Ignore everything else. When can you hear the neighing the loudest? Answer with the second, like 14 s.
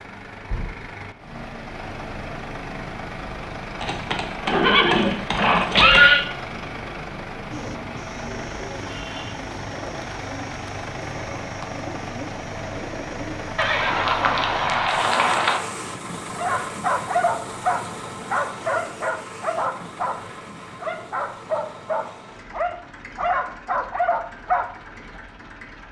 6 s.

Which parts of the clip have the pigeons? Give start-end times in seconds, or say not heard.
7.5-14.7.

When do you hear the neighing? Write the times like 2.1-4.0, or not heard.
3.8-6.2, 13.6-15.6.